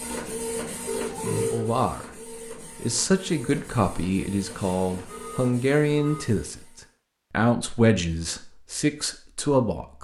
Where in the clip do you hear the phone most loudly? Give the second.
1 s.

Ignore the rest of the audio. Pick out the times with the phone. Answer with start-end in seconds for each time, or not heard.
0.8-1.7, 5.0-6.2.